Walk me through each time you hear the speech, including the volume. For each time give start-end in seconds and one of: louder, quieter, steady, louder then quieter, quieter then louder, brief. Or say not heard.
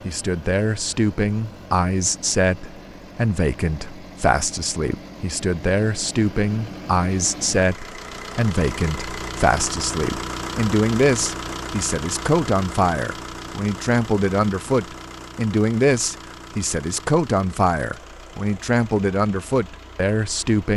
0.1-20.7 steady.